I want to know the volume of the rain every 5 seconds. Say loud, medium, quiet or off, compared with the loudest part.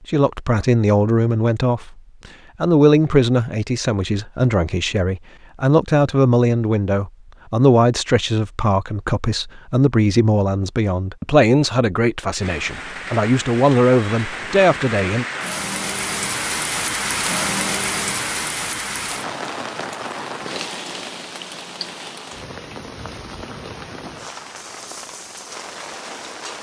off, off, medium, loud, medium, medium.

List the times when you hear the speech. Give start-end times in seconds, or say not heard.
0.1-2.0, 2.6-15.2.